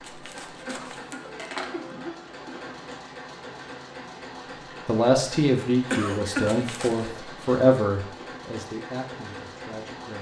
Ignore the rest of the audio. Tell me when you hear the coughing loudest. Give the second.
6 s.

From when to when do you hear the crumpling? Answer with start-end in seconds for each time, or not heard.
0.0-1.9, 6.5-7.0.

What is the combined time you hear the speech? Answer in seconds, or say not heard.
5 s.